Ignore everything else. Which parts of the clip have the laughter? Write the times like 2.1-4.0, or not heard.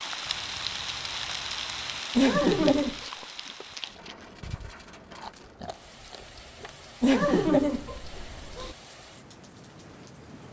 2.1-3.0, 7.0-8.8.